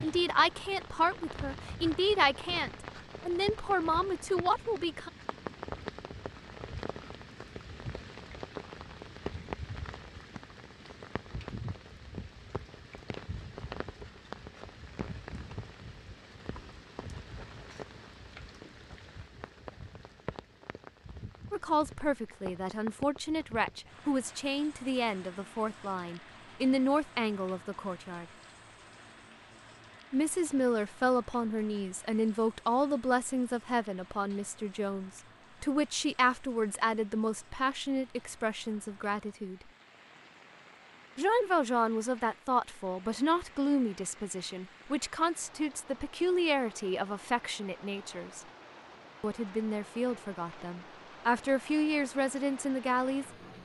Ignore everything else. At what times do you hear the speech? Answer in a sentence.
You can hear the speech from 0.0 to 5.1 s, from 21.5 to 28.2 s, from 30.1 to 39.6 s, from 41.1 to 48.4 s and from 49.2 to 53.6 s.